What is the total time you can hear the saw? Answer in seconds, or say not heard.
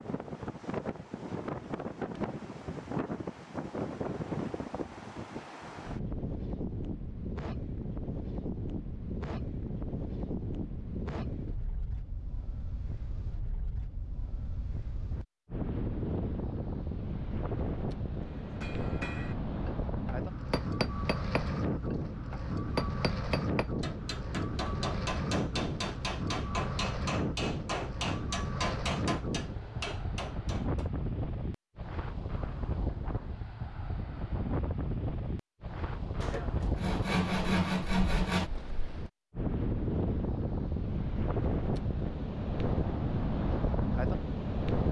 2 s.